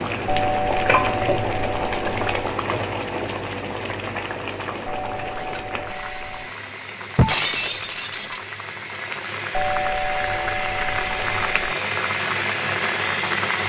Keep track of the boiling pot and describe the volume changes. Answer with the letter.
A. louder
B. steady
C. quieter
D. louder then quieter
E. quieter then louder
E.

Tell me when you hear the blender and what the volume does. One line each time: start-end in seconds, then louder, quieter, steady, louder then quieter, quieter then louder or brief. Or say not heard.
not heard.